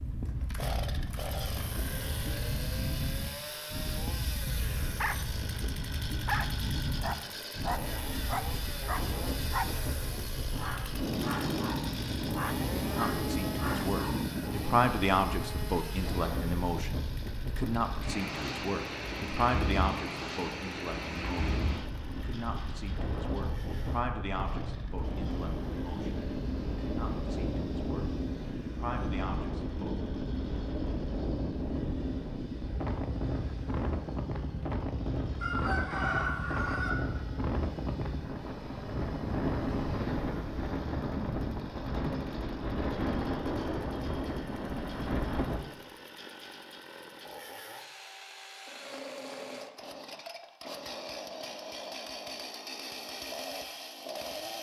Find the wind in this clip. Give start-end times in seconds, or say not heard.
0.0-45.6.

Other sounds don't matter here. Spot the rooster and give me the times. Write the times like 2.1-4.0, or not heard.
35.4-37.0.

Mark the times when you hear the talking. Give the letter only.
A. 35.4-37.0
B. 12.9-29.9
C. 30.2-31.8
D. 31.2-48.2
B.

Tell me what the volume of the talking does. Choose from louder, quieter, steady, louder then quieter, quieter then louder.
quieter.